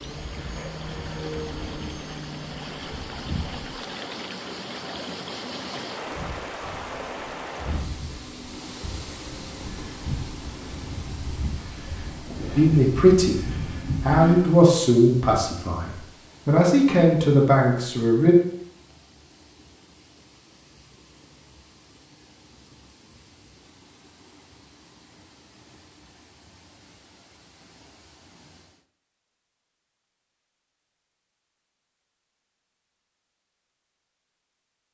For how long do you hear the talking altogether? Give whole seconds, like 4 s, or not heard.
6 s.